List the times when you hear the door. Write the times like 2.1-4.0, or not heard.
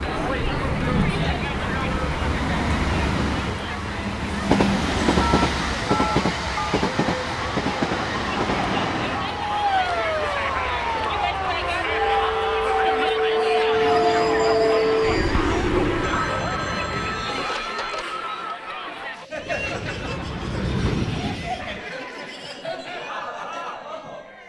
not heard.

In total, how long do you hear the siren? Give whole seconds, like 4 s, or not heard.
7 s.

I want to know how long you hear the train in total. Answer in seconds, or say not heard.
20 s.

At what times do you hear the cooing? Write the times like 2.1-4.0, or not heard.
not heard.